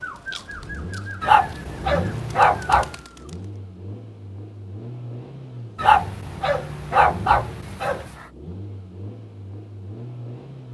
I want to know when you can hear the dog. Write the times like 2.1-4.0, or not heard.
1.2-3.0, 5.8-8.1.